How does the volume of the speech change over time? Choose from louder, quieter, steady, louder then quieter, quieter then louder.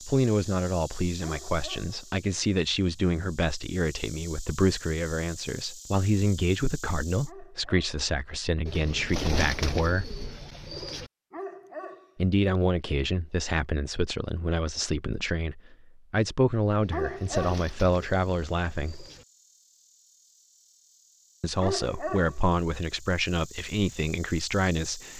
steady.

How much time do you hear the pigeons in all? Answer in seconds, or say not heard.
5 s.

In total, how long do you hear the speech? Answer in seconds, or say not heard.
21 s.